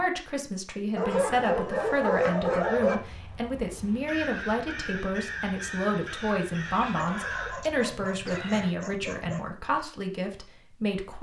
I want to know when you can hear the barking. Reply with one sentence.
The barking can be heard from 0.9 to 3.0 s and from 7.0 to 9.4 s.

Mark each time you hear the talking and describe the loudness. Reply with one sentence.
The talking can be heard from 0.0 to 11.1 s, at a steady volume.